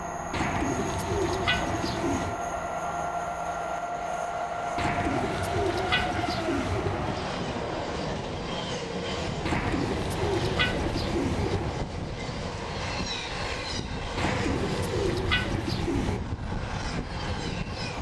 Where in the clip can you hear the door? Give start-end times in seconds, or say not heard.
not heard.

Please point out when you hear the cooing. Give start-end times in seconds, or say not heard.
0.3-2.4, 4.8-7.2, 9.4-11.8, 14.2-16.2.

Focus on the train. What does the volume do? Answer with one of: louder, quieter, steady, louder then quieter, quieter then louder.
steady.